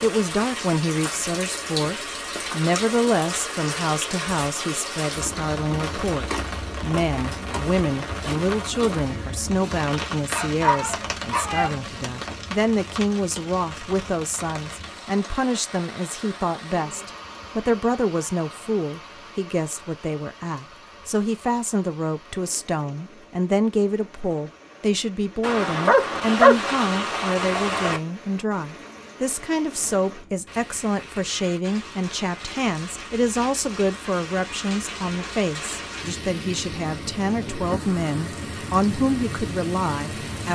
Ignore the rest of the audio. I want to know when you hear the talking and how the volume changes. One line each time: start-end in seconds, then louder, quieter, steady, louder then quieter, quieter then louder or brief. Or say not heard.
0.0-40.4 steady.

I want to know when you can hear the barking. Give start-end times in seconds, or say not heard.
10.3-11.8, 25.4-28.0.